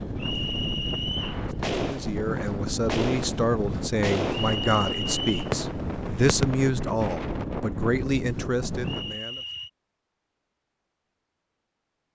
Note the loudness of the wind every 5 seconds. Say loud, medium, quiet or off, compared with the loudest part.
loud, loud, off.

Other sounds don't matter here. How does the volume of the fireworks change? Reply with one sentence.
The loudness of the fireworks goes down, then up.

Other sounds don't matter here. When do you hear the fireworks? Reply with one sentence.
You can hear the fireworks from 1.1 to 6.7 s.